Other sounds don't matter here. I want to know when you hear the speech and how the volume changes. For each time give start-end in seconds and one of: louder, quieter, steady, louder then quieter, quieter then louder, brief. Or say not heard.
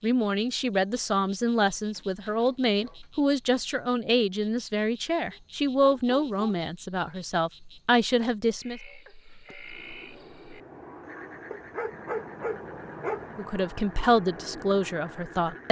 0.0-8.8 steady
13.3-15.6 brief.